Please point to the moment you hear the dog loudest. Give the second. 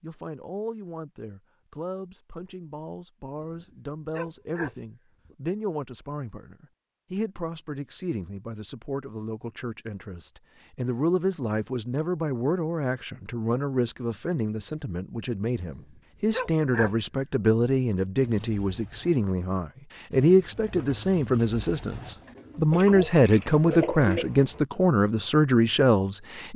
17 s.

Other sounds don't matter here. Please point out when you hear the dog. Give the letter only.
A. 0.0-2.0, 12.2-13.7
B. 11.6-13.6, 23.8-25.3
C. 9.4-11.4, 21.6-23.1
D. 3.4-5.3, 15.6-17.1
D.